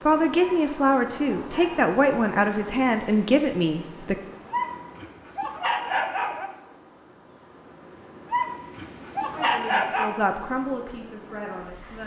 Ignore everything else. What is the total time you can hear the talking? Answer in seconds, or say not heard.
7 s.